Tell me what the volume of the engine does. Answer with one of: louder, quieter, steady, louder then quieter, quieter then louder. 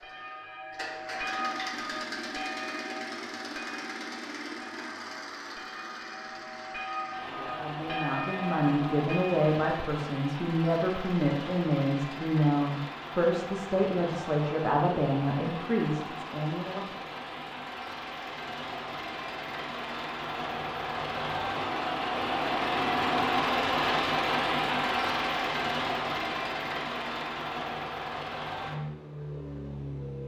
louder.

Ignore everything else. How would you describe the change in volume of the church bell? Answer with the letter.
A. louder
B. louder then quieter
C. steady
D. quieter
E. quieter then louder
E.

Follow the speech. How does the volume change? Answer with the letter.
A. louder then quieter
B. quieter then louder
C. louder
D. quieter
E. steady
E.